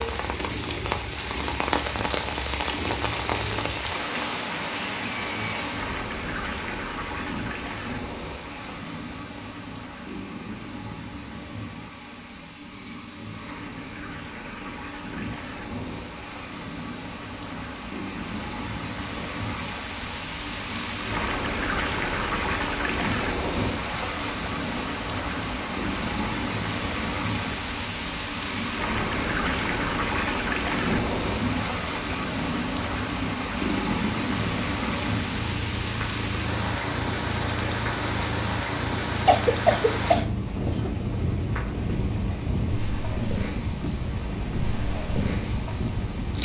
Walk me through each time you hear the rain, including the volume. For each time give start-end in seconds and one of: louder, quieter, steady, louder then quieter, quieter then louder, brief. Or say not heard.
0.0-46.4 quieter then louder.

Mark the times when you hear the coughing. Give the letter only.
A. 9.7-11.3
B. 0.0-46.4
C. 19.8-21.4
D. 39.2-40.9
D.